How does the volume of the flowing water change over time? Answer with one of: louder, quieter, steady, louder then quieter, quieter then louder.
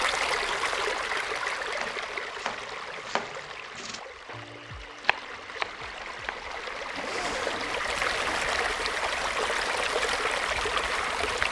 quieter then louder.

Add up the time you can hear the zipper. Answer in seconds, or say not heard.
2 s.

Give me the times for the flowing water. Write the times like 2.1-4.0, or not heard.
0.0-11.4.